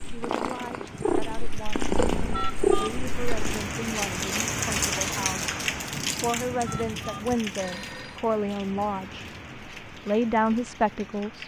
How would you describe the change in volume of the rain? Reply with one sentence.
The loudness of the rain goes up, then down.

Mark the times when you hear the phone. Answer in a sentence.
You can hear the phone from 2.3 to 3.4 s and from 6.7 to 8.2 s.